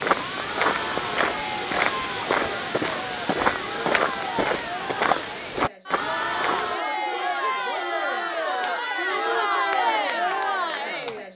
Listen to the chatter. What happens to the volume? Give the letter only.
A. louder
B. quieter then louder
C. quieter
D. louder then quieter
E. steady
A.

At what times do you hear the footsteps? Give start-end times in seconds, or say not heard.
0.0-6.8.